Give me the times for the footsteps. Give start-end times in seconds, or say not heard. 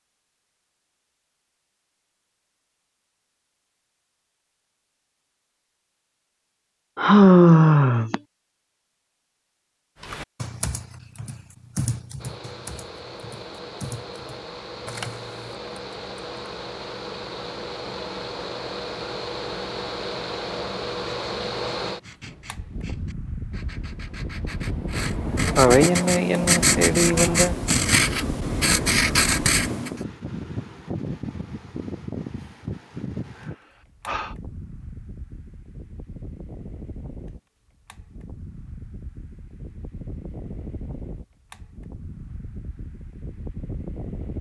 not heard.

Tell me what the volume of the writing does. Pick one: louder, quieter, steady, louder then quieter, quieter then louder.
louder.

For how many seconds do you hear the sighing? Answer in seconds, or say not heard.
4 s.